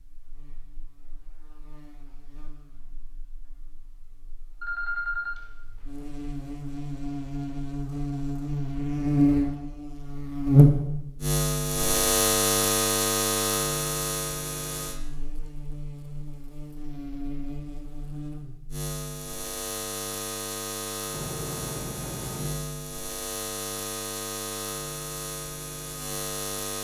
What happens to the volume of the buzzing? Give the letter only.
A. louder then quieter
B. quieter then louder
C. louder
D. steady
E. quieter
A.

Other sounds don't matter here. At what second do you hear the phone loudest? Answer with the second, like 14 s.
5 s.